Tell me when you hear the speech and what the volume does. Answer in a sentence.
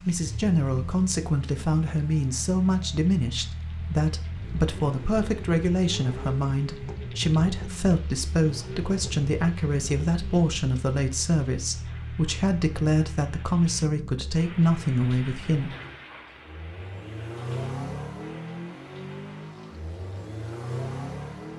The speech can be heard from 0.0 to 15.7 s, at a steady volume.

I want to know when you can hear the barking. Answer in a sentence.
You can't hear the barking here.